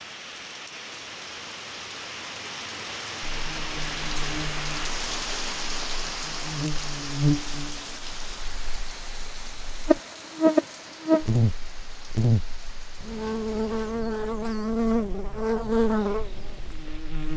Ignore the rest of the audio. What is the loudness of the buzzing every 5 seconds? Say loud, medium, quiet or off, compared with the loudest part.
quiet, medium, loud, loud.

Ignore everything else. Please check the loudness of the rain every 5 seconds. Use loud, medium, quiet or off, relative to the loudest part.
loud, loud, medium, quiet.